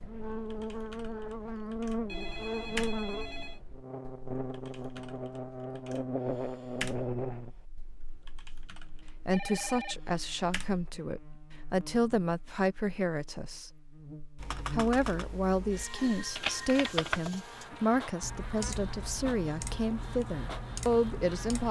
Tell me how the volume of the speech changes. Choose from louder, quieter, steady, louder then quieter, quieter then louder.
steady.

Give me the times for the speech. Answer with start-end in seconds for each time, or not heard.
9.2-13.7, 14.7-21.6.